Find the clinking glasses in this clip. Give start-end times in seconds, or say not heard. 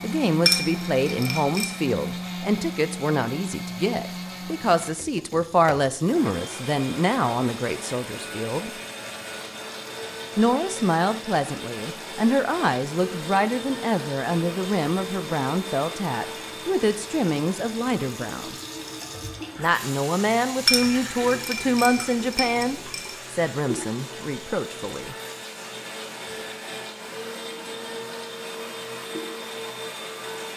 0.5-1.7, 20.6-23.1.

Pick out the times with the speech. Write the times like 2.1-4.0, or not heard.
0.0-8.7, 10.3-18.6, 19.6-25.1.